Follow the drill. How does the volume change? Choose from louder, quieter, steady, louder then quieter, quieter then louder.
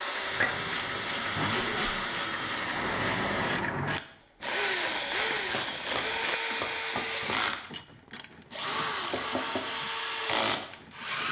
steady.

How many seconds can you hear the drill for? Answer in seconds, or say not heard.
11 s.